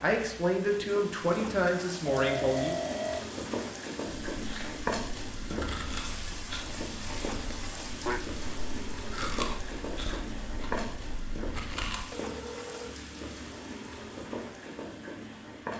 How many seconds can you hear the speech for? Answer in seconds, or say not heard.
3 s.